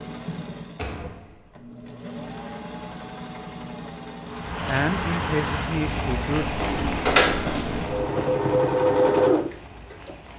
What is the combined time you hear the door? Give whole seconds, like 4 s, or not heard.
3 s.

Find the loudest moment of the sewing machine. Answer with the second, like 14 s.
9 s.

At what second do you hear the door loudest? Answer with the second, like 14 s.
7 s.